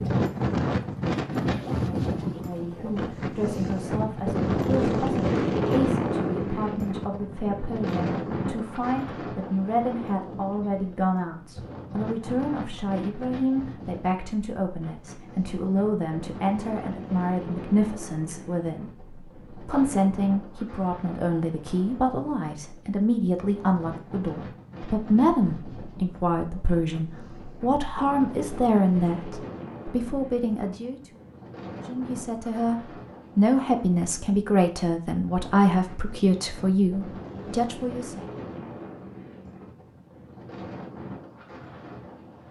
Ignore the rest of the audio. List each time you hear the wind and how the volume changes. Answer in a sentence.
You can hear the wind from 0.0 to 42.4 s, getting quieter.